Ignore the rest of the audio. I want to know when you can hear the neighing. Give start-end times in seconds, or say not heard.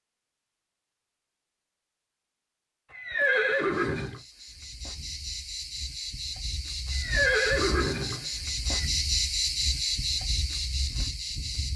2.9-4.2, 6.9-8.8.